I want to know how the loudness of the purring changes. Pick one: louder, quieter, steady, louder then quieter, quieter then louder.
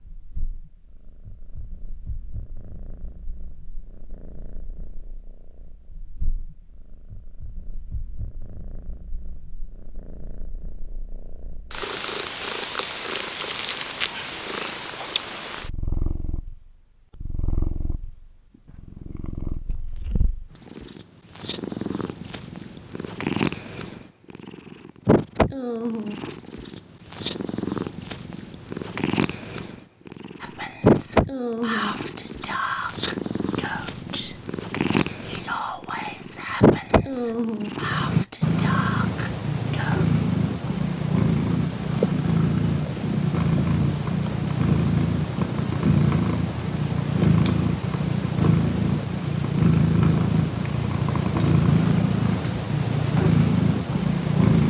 louder.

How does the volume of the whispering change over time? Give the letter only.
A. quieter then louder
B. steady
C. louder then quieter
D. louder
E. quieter
B.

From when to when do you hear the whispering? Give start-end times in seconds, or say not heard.
30.4-40.1.